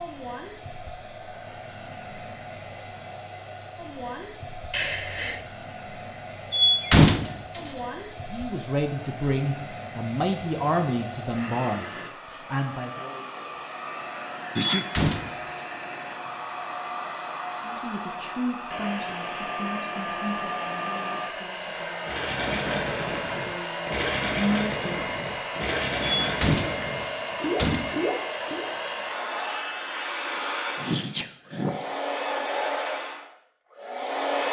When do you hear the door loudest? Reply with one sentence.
The loudest moment of the door is at 7 seconds.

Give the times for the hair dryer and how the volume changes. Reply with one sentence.
The hair dryer can be heard from 0.0 to 34.4 s, getting louder.